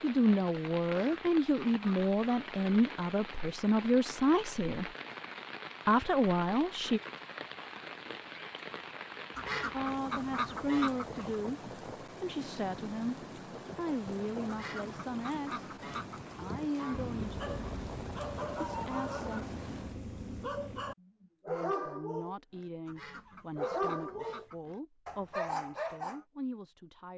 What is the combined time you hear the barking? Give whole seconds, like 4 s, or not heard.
9 s.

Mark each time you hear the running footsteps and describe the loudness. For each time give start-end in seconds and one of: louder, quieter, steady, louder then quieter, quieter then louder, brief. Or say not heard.
not heard.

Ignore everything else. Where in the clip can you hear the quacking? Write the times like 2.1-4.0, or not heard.
0.8-2.4, 9.3-11.4, 14.4-17.1, 22.9-24.8.